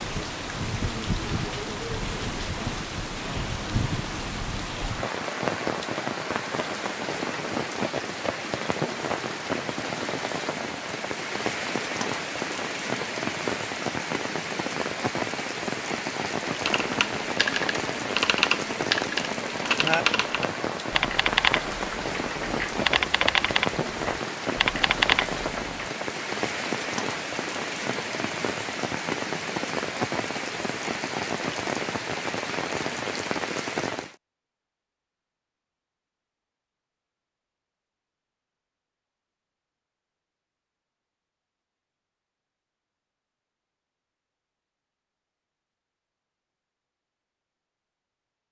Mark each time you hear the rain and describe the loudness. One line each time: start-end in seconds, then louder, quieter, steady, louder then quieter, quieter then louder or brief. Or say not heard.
0.0-34.1 steady.